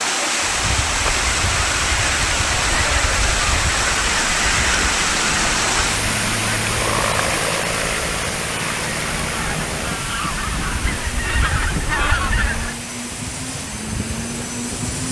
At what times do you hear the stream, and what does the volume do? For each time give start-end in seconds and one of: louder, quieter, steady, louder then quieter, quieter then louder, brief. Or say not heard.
0.0-15.0 quieter.